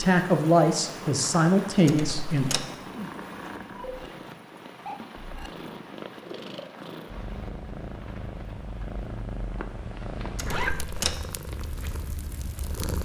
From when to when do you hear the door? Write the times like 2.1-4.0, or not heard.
1.9-2.8, 10.3-11.2.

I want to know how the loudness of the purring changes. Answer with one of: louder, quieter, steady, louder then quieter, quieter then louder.
steady.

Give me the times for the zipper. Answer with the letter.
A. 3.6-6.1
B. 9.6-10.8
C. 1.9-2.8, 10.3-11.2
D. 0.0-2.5
B.